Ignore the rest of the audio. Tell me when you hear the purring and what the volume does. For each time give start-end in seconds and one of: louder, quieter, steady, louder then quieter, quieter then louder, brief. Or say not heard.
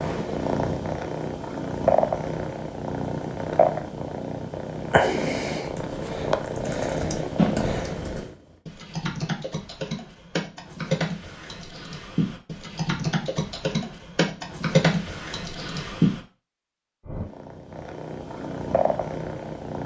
0.0-8.3 steady
17.1-19.8 brief.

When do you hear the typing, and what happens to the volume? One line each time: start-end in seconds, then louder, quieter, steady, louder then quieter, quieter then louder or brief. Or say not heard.
5.7-16.2 louder.